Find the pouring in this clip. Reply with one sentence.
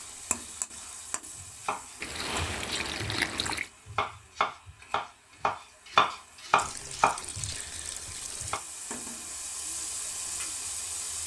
The pouring can be heard from 2.0 to 3.7 s and from 6.5 to 8.6 s.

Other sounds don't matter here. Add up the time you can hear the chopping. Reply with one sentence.
The chopping can be heard for 8 seconds in total.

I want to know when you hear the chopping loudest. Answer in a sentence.
The volume of the chopping peaks at 6 seconds.